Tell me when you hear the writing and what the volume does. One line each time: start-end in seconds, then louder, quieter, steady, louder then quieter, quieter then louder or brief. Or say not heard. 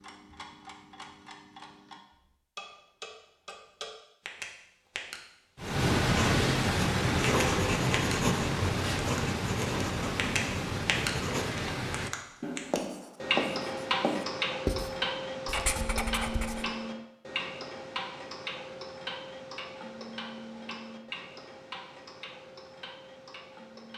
5.6-16.6 quieter.